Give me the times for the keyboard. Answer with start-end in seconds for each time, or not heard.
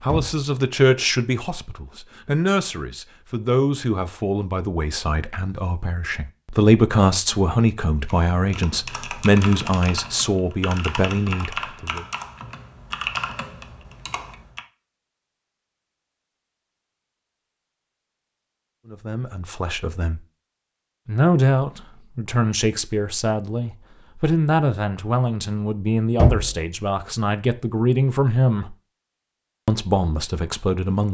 8.1-14.7.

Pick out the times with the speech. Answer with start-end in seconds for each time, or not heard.
0.0-12.1, 18.9-20.2, 21.1-28.8, 29.6-31.0.